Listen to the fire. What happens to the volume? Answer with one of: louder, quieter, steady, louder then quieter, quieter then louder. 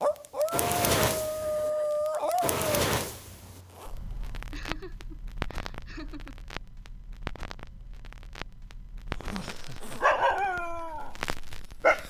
quieter.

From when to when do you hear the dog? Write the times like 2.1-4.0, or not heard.
0.0-2.6, 10.0-12.0.